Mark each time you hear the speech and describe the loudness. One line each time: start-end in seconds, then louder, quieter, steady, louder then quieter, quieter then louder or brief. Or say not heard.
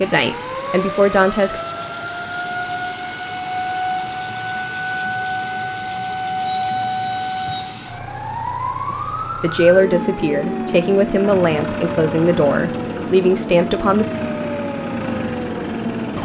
0.0-1.6 brief
8.9-14.1 steady.